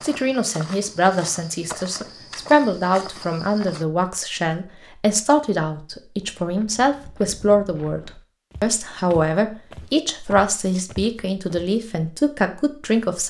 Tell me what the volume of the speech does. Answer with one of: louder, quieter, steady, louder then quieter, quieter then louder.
steady.